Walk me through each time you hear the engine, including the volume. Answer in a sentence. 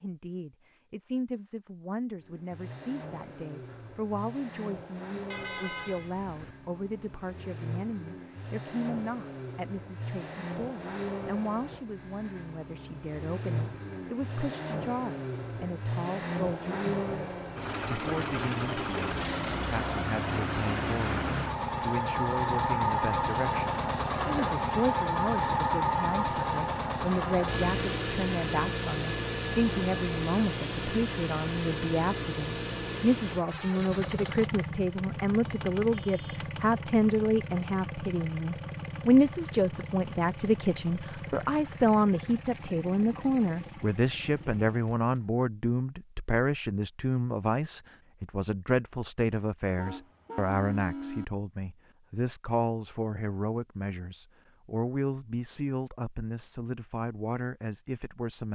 You can hear the engine from 2.2 to 45.2 s, getting louder then quieter.